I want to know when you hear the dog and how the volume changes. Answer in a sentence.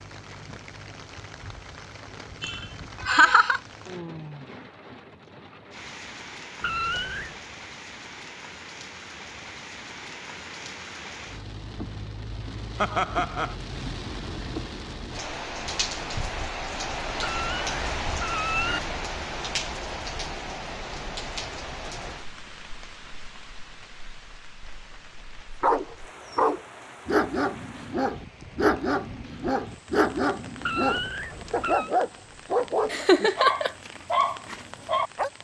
You can hear the dog from 25.6 to 35.3 s, at a steady volume.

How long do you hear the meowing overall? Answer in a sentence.
The meowing can be heard for 4 seconds in total.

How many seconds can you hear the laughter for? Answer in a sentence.
You can hear the laughter for 3 seconds altogether.